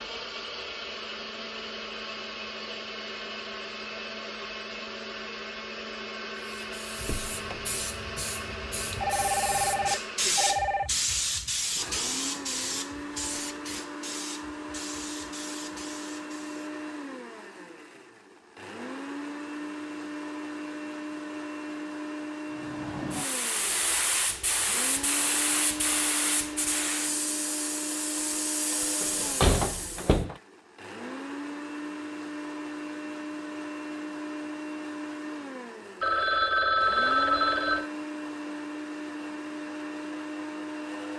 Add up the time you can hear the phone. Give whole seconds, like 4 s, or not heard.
4 s.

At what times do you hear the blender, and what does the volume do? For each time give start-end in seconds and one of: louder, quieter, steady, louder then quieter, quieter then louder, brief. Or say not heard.
0.0-41.1 steady.